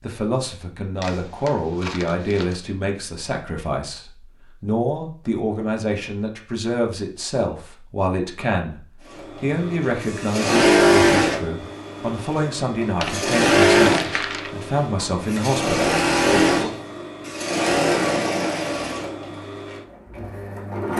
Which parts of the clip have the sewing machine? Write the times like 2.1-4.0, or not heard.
9.1-20.9.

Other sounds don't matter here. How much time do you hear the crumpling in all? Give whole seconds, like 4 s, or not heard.
3 s.